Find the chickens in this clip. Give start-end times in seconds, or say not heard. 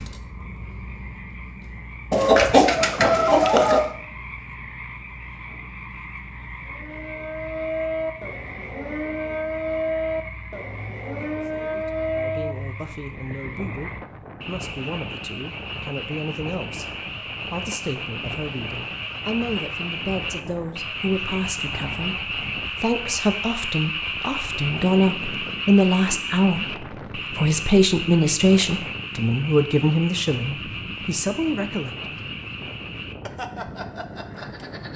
2.1-4.0.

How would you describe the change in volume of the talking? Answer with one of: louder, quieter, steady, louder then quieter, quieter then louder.
louder.